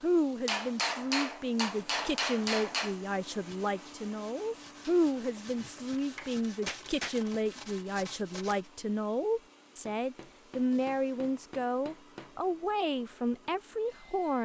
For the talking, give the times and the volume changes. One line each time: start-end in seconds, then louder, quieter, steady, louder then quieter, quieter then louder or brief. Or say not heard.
0.0-14.4 steady.